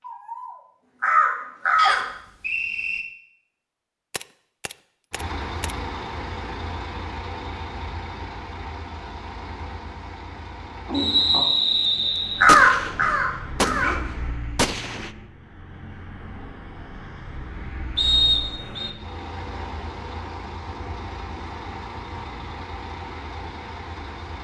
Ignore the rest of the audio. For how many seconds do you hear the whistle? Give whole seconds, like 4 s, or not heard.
4 s.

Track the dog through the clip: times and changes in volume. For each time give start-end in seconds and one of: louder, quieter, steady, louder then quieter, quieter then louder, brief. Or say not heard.
not heard.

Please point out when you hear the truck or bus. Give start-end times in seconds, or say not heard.
5.1-24.3.